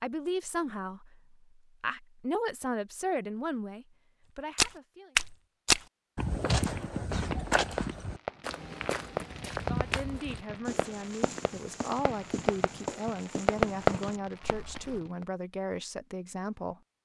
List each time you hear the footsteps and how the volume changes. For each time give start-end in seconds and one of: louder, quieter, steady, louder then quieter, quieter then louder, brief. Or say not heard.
4.5-15.0 quieter.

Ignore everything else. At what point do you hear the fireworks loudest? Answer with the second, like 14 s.
14 s.